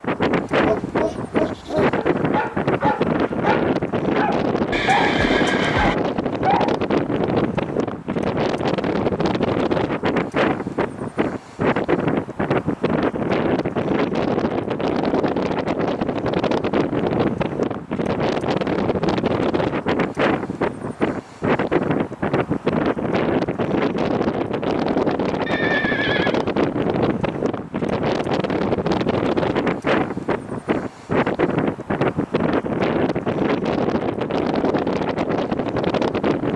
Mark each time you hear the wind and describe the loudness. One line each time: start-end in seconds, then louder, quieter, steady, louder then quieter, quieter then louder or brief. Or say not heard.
0.0-36.5 steady.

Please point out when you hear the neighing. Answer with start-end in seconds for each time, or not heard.
4.7-6.0, 25.4-26.4.